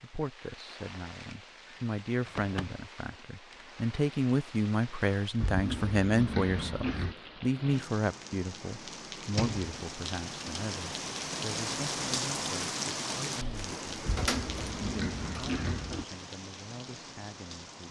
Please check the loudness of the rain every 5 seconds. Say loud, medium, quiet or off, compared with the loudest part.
quiet, medium, loud, medium.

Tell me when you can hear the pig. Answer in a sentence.
The pig can be heard from 5.4 to 7.2 s and from 14.1 to 16.1 s.